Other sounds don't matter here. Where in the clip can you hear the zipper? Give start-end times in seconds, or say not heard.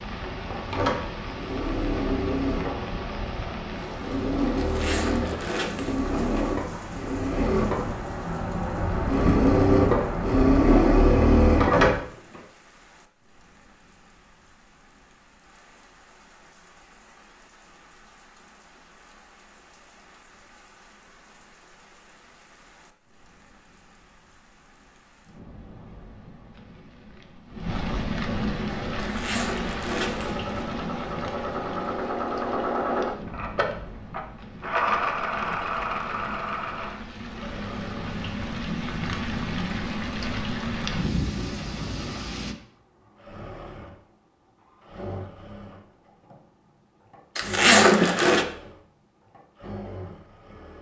4.5-6.5, 28.9-30.4, 47.4-48.5.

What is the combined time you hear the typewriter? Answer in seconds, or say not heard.
not heard.